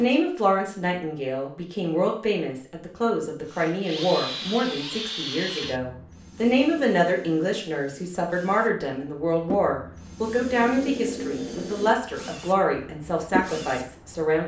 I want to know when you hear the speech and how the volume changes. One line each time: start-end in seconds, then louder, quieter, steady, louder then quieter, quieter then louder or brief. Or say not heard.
0.0-14.4 steady.